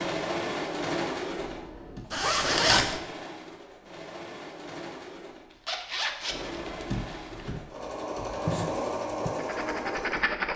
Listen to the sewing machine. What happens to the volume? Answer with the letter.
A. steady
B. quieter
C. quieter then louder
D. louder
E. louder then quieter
C.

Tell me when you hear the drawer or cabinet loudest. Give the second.
7 s.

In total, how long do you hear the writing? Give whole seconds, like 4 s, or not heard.
2 s.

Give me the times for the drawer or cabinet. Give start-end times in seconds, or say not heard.
1.4-2.0, 6.3-7.6.